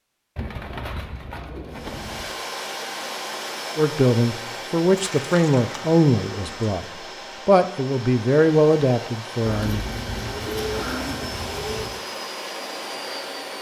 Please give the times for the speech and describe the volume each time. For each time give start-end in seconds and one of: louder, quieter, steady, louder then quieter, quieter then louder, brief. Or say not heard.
3.8-9.8 quieter then louder.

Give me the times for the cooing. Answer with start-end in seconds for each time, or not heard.
0.3-2.3, 5.0-6.8, 9.4-12.0.